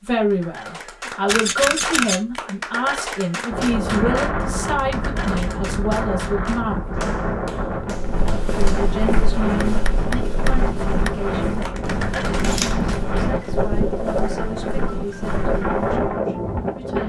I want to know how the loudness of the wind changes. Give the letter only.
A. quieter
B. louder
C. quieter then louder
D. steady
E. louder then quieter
D.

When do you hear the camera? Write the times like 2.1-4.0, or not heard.
1.2-2.2, 11.8-13.2.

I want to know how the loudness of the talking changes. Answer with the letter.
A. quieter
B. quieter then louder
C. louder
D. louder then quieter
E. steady
A.